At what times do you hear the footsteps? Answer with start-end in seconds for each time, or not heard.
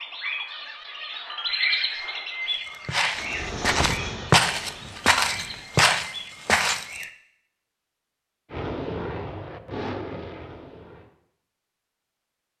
2.5-7.0.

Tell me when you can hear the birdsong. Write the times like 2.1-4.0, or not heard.
0.0-7.1.